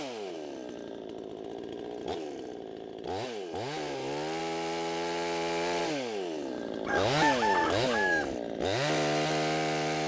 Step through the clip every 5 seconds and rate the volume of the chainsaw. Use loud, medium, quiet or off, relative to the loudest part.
medium, loud.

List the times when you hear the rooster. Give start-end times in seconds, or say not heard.
6.8-8.3.